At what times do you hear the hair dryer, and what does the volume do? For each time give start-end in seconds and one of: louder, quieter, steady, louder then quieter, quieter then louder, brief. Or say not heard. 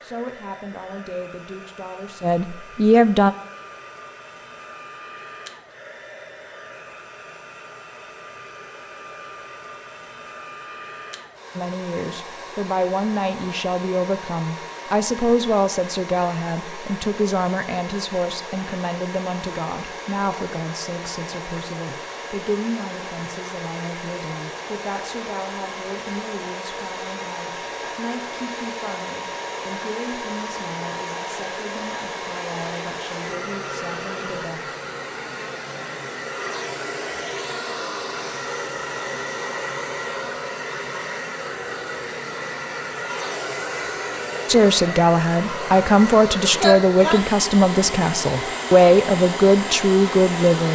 0.0-50.7 louder.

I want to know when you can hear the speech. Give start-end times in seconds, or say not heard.
0.0-3.4, 11.6-34.7, 44.5-50.7.